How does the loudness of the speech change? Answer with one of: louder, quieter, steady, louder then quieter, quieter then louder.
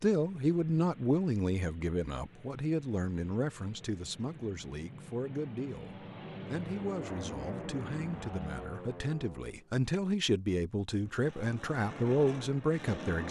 quieter then louder.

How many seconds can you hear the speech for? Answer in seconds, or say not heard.
13 s.